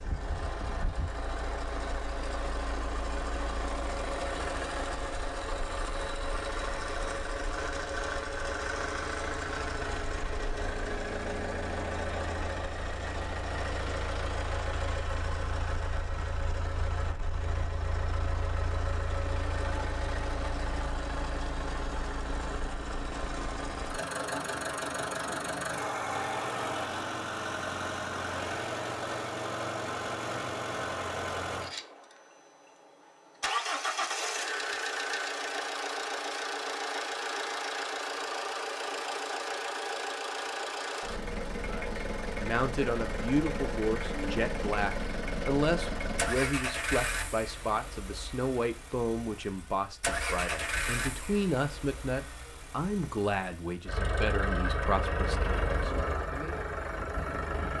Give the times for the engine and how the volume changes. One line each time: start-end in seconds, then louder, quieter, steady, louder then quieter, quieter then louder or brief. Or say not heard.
0.0-57.7 steady.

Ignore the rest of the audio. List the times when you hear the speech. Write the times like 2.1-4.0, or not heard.
41.6-56.5.